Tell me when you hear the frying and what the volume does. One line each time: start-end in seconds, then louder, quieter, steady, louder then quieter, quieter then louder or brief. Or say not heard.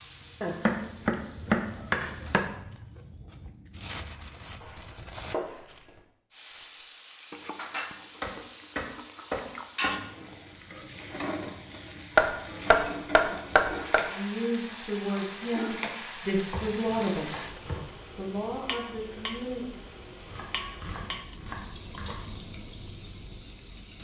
0.0-2.5 brief
6.3-23.9 steady.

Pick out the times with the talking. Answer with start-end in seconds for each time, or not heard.
14.1-17.4, 18.1-19.8.